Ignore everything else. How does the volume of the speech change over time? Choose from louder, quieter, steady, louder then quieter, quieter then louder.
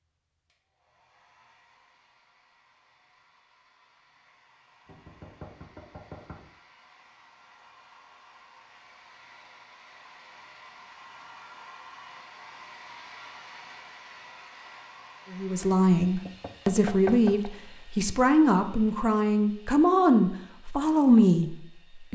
steady.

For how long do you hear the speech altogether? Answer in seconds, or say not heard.
7 s.